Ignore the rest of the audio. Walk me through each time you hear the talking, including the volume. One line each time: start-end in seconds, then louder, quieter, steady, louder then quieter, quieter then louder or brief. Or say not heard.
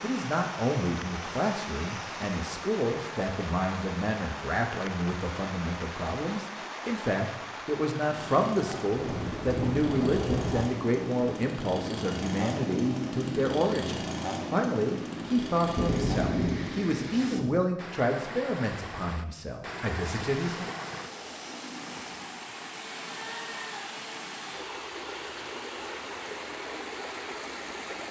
0.0-20.8 steady.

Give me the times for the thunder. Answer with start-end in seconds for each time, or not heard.
8.9-10.7, 15.8-17.6.